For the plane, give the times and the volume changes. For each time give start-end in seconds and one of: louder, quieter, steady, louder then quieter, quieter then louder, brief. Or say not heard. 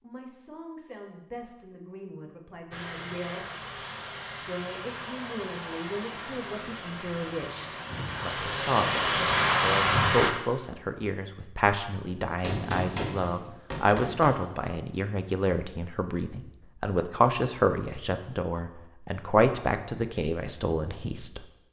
2.7-10.3 louder.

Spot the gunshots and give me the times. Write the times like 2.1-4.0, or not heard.
12.4-14.3.